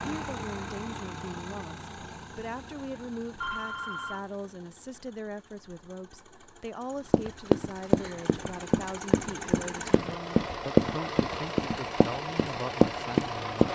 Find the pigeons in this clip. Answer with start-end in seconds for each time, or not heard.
not heard.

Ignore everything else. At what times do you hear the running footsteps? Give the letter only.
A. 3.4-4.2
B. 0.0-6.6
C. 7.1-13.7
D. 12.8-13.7
C.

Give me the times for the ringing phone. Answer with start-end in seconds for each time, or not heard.
3.4-4.2.